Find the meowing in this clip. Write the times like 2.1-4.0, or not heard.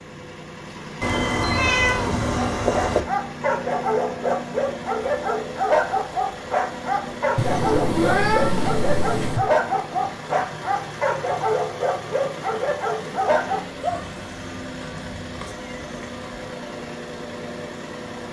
1.0-3.0, 7.3-9.4, 13.9-16.5.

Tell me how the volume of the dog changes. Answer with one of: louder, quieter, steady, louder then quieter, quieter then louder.
steady.